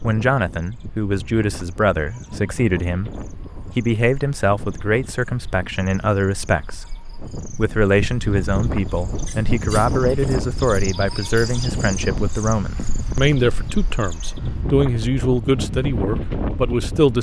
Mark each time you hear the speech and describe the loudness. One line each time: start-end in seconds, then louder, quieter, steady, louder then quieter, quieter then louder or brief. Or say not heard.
0.0-17.1 steady.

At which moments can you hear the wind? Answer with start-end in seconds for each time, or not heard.
0.0-17.1.